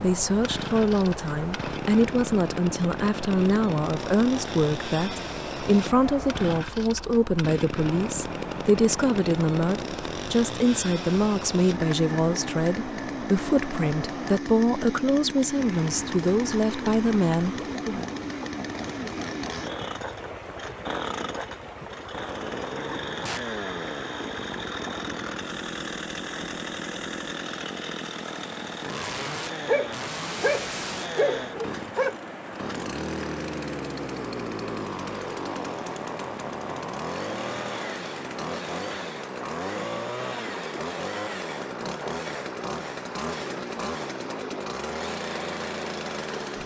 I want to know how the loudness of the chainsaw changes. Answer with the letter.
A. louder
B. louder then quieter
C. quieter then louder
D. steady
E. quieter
D.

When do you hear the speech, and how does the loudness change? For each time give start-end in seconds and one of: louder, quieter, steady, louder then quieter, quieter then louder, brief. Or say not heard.
0.0-18.1 steady.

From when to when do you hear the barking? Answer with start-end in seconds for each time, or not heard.
29.6-32.1.